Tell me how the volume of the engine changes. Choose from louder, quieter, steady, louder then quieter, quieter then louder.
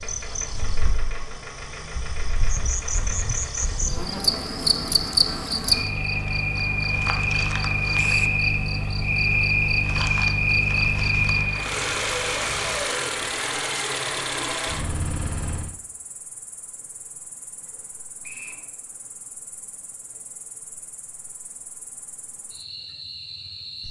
louder.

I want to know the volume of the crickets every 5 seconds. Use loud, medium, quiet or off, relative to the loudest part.
medium, loud, loud, quiet, quiet.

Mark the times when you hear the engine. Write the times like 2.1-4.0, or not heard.
0.0-15.8.